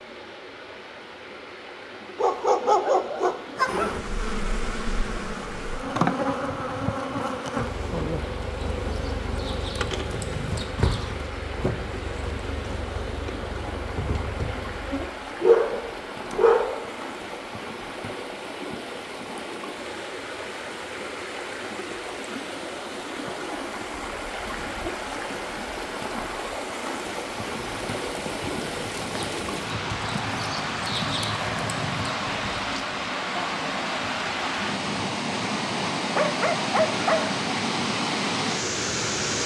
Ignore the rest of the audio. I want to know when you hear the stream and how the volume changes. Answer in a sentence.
The stream can be heard from 0.0 to 39.4 s, getting louder.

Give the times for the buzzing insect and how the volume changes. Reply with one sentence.
You can hear the buzzing insect from 3.6 to 15.1 s, getting quieter.